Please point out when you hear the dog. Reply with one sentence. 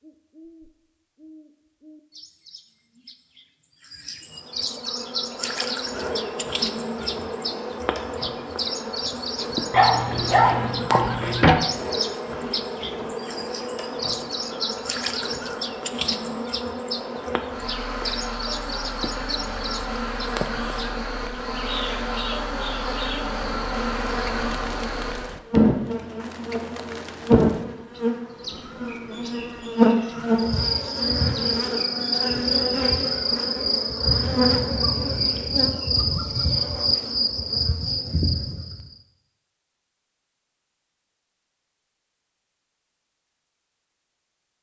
The dog can be heard from 9.7 to 11.6 s.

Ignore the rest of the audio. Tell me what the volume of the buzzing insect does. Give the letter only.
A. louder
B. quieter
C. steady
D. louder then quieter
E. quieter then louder
A.